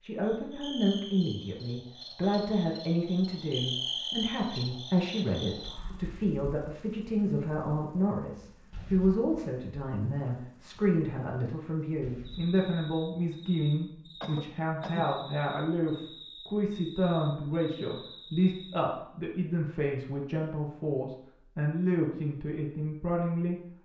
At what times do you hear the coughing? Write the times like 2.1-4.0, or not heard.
14.2-15.2.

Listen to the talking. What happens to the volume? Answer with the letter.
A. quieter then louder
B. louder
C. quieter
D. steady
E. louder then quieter
D.